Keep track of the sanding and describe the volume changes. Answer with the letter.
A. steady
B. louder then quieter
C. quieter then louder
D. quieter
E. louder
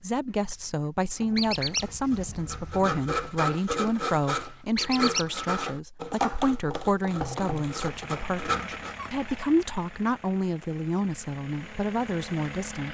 E.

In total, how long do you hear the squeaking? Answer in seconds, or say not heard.
2 s.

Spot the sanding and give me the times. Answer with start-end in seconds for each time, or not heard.
1.1-8.9.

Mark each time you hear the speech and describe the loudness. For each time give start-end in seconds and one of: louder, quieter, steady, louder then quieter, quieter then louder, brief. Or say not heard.
0.0-12.8 steady.